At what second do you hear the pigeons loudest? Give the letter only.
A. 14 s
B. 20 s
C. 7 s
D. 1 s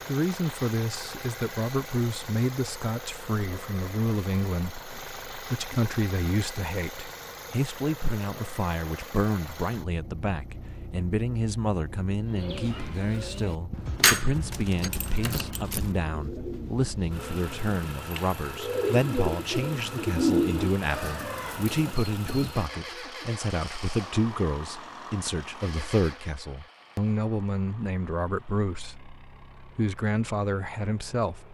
B.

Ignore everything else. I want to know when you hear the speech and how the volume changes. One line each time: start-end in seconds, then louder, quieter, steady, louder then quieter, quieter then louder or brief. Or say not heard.
0.0-31.4 steady.